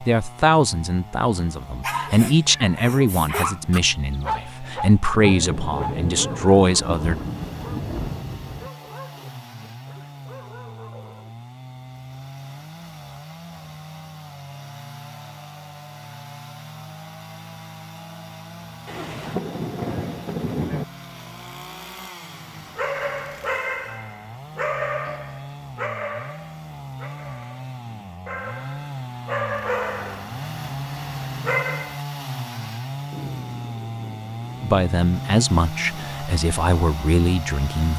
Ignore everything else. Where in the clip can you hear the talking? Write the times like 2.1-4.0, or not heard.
0.0-7.2, 34.6-37.9.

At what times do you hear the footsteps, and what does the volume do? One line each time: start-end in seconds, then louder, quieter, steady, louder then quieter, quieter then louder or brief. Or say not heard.
not heard.